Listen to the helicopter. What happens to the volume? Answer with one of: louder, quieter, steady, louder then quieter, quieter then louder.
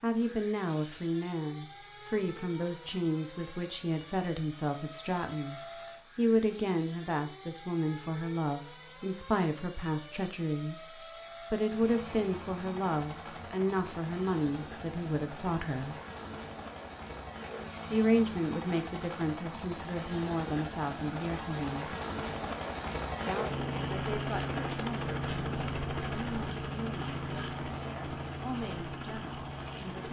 louder.